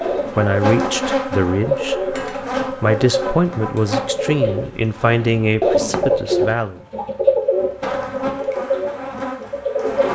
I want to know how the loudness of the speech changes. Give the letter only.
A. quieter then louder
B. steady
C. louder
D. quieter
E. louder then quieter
B.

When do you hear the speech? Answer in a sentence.
You can hear the speech from 0.3 to 6.8 s.